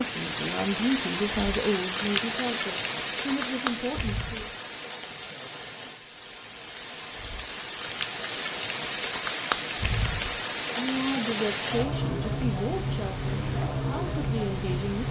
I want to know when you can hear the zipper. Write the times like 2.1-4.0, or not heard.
not heard.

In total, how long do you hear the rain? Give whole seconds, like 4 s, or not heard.
15 s.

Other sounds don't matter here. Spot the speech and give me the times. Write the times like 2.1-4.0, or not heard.
0.0-4.5, 10.7-15.0.